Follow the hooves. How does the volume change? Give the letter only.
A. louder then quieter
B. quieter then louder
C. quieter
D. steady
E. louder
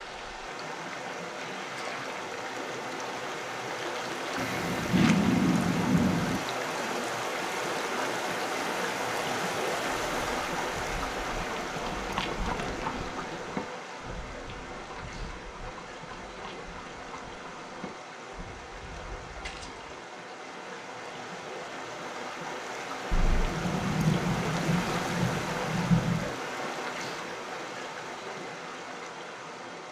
C.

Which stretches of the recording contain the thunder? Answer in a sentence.
The thunder can be heard from 4.3 to 6.4 s and from 23.1 to 26.3 s.